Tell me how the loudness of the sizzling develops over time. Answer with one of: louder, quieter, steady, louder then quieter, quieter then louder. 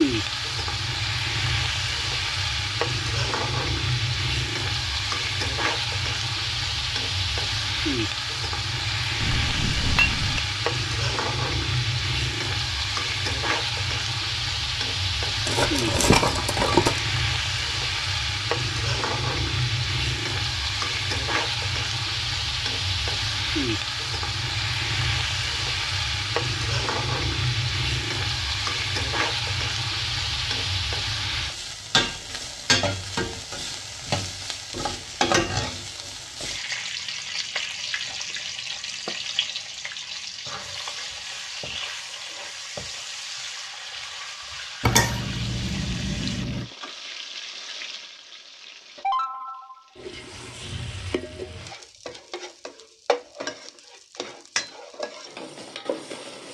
quieter.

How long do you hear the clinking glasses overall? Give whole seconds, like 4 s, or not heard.
3 s.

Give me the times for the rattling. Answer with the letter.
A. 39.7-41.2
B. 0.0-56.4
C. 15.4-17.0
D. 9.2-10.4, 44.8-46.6
C.